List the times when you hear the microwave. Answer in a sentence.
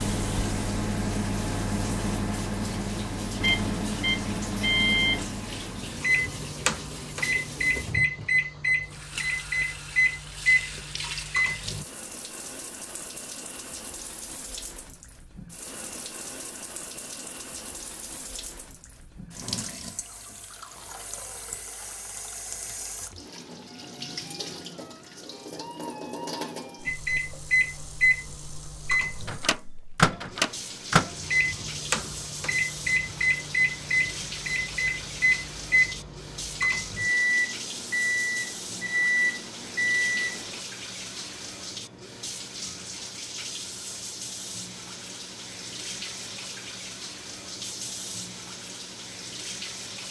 You can hear the microwave from 0.0 to 11.8 s and from 26.9 to 40.6 s.